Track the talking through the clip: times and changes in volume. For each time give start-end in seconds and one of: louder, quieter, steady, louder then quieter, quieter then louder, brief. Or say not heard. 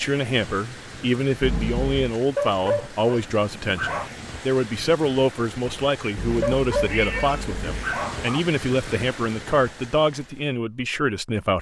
0.0-11.5 steady.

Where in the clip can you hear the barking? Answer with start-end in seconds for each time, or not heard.
2.4-4.1, 6.4-8.4.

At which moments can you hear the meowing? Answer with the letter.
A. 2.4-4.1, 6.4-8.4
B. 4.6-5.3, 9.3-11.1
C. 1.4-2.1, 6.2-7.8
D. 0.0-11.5
C.